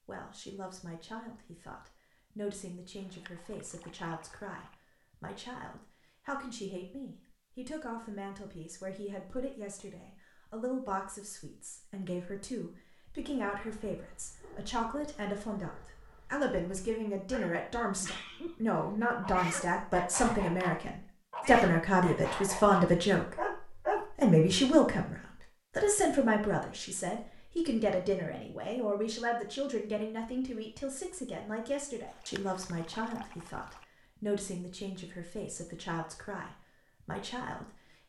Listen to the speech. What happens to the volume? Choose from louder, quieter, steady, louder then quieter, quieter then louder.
louder then quieter.